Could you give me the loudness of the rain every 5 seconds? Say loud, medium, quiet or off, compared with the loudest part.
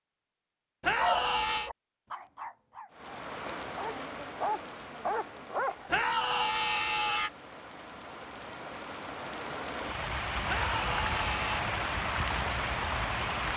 medium, medium, loud.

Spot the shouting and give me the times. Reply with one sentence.
You can hear the shouting from 0.8 to 1.7 s, from 5.8 to 7.3 s and from 10.4 to 11.6 s.